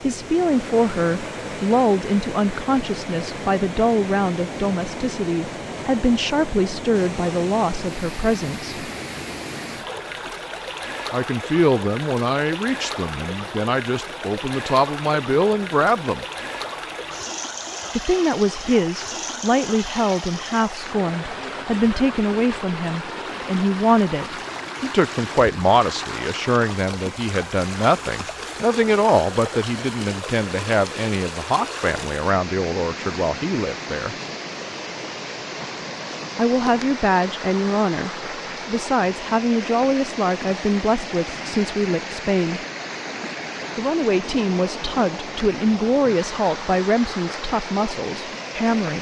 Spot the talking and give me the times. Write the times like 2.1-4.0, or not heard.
0.0-8.8, 11.1-16.2, 17.9-34.1, 36.4-42.6, 43.8-48.9.